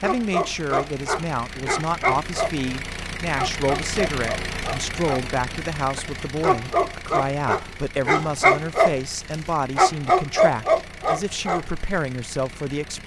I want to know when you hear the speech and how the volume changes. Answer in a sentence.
The speech can be heard from 0.0 to 13.0 s, at a steady volume.